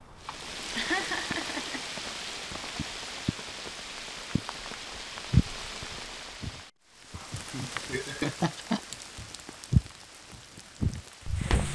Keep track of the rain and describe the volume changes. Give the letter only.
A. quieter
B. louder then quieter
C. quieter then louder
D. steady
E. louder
A.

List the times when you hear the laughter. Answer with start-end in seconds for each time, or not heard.
0.2-1.9, 7.3-8.8.